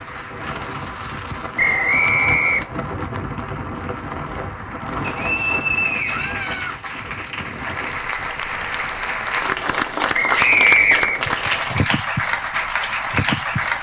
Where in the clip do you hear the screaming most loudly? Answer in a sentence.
The loudest moment of the screaming is at 11 seconds.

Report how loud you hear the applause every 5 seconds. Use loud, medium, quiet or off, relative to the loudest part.
quiet, medium, loud.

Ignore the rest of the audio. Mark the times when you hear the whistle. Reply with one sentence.
The whistle can be heard from 1.6 to 2.7 s, from 5.0 to 6.5 s and from 10.1 to 11.7 s.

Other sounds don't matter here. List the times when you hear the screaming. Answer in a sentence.
You can hear the screaming from 1.6 to 2.6 s, from 6.0 to 6.8 s and from 10.3 to 11.0 s.